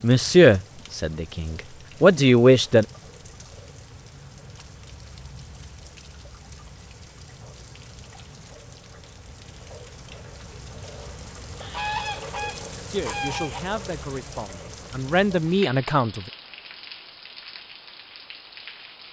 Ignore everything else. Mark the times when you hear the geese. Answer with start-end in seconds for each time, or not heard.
11.6-13.6.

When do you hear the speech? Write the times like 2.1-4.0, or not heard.
0.0-2.9, 12.8-16.3.